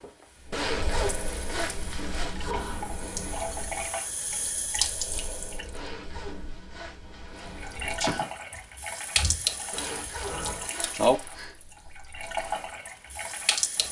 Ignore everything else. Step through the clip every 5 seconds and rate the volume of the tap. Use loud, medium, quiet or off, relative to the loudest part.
medium, loud, loud.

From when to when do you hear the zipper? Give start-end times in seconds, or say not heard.
0.5-2.5, 5.7-7.8, 9.7-11.4.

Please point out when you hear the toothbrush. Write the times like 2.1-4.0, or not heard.
not heard.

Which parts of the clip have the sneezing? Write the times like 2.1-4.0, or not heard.
2.4-3.0, 7.8-8.3.